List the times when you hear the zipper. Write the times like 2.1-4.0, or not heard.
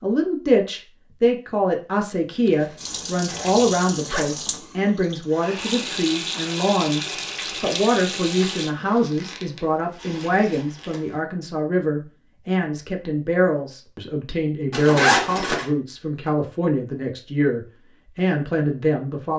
2.5-4.3, 8.6-11.1, 14.7-15.7.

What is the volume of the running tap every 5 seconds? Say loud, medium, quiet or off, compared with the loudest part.
loud, loud, off, off.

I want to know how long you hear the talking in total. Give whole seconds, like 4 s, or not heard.
19 s.